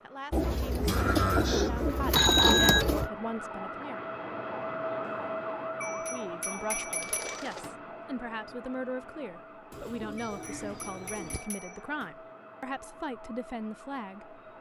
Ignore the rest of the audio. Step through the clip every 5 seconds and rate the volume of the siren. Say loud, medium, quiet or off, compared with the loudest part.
loud, loud, medium.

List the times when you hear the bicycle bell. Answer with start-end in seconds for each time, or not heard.
2.1-2.9, 5.8-7.8, 10.2-12.2.